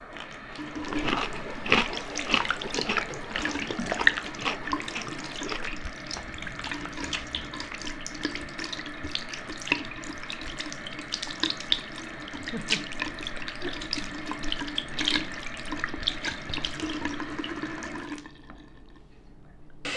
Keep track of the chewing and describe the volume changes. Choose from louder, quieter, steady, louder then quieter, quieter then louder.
quieter.